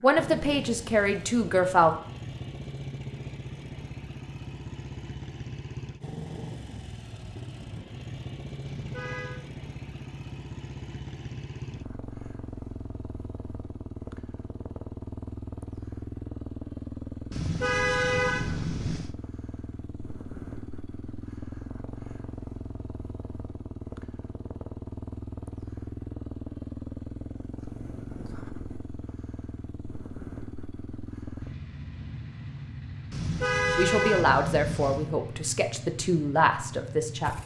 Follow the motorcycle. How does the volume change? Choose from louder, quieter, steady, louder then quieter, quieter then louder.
steady.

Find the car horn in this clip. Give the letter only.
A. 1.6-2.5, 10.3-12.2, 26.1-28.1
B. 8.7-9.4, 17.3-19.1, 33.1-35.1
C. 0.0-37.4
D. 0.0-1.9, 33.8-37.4
B.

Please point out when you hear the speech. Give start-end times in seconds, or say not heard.
0.0-1.9, 33.8-37.4.